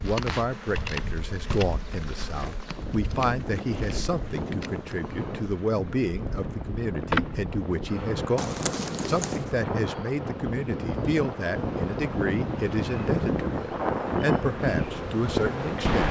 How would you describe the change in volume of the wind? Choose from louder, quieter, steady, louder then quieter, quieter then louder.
louder.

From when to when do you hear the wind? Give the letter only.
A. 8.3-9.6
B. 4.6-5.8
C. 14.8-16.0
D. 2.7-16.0
D.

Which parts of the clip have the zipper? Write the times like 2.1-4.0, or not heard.
8.3-9.6.